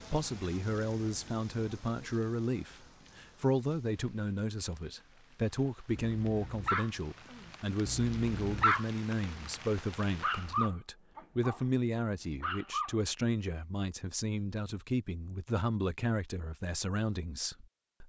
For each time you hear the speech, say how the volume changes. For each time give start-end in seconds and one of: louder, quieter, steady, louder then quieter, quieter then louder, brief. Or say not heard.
0.1-18.0 steady.